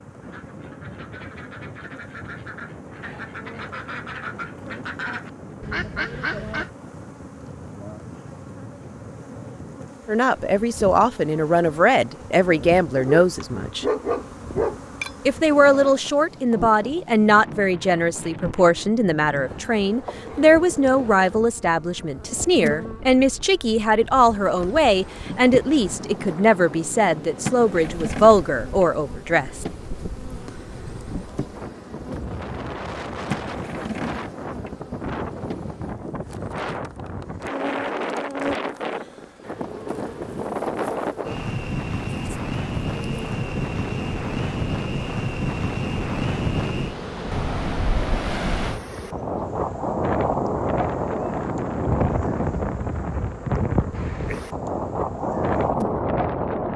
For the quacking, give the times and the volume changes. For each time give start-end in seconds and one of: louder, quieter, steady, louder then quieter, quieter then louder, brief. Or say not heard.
0.2-6.7 louder.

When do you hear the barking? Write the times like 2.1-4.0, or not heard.
12.9-15.3.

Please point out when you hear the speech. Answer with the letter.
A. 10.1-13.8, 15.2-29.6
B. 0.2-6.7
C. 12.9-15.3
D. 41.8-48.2
A.